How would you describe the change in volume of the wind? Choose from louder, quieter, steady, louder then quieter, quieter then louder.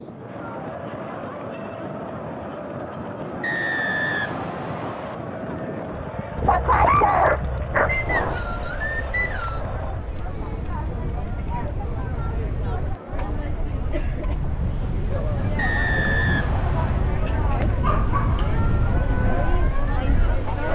louder.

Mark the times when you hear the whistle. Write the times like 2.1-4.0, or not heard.
3.4-5.2, 7.8-9.6, 15.6-17.1.